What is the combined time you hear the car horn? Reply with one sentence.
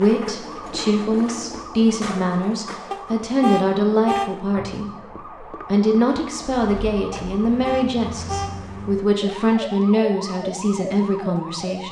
You can hear the car horn for 3 seconds altogether.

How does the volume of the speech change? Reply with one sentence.
The loudness of the speech stays about the same.